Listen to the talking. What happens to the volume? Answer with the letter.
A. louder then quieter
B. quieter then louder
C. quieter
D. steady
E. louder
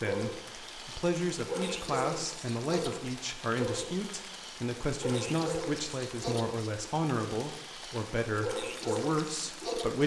D.